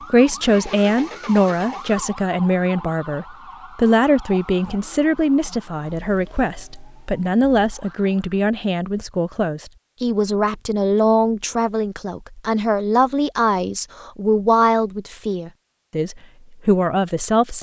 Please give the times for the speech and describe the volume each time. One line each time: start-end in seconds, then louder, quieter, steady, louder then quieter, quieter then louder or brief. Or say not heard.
0.1-17.5 steady.